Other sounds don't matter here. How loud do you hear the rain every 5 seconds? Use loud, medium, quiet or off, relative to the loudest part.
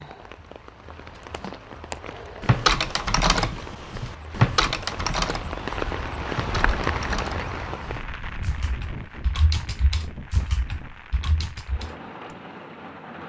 medium, loud, medium.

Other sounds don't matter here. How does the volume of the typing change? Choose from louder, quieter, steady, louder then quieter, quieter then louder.
quieter.